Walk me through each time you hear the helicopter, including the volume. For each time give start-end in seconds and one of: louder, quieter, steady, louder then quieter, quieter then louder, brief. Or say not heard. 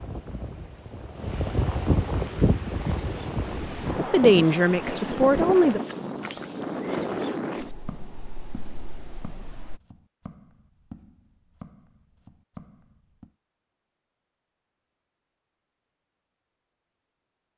not heard.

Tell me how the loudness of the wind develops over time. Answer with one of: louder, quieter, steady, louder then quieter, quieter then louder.
quieter.